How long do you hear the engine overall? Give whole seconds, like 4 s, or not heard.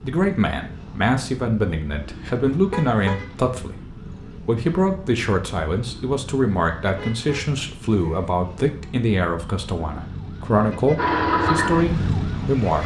2 s.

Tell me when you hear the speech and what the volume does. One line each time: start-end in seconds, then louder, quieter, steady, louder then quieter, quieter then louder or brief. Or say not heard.
0.0-12.8 steady.